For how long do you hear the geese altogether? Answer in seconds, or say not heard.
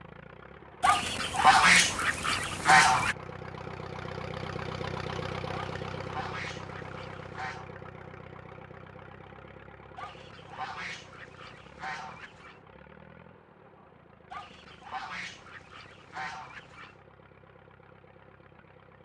10 s.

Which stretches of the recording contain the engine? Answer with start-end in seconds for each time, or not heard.
0.0-19.0.